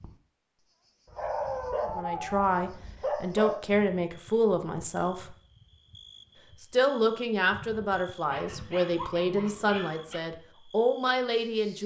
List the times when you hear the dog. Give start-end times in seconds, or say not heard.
1.1-3.5, 8.2-10.2.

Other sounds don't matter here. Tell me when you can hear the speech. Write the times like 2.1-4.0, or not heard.
1.8-5.3, 6.6-11.8.